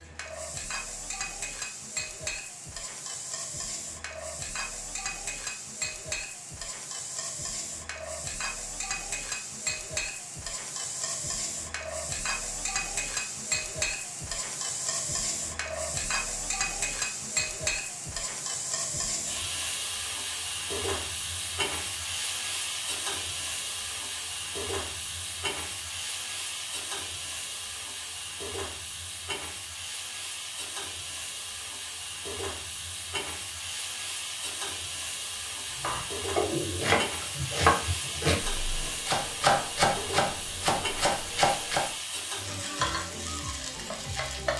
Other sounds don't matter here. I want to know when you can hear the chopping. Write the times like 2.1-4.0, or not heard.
35.8-41.9.